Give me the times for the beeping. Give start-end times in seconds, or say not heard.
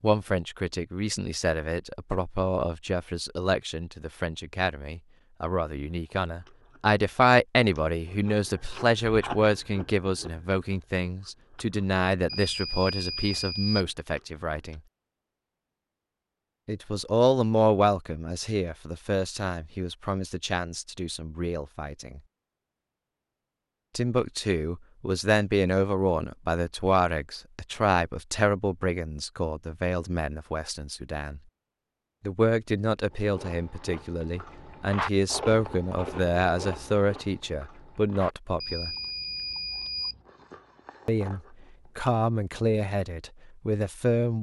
12.2-13.9, 38.6-40.2.